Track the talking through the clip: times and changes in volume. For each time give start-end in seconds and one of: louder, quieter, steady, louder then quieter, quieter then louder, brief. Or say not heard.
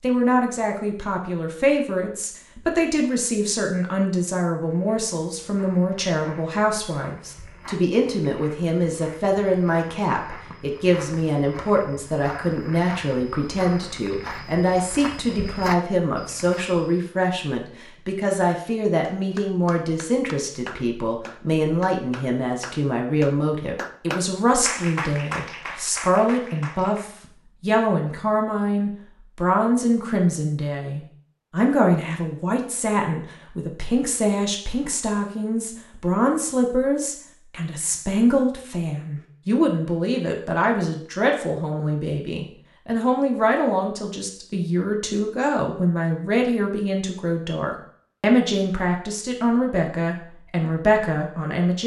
0.0-51.8 steady.